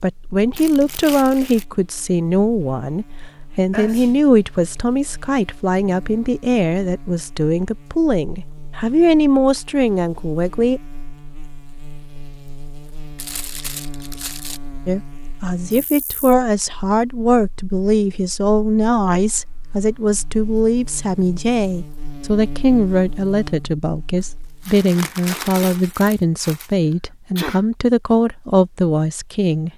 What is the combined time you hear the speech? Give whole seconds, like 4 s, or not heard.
26 s.